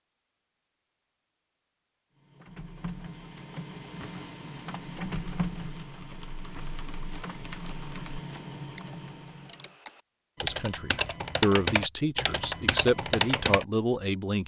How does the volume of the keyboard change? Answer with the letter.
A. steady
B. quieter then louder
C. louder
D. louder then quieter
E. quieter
C.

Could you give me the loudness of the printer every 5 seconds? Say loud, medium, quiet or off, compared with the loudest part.
loud, loud, off.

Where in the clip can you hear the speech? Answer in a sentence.
The speech can be heard from 10.4 to 14.4 s.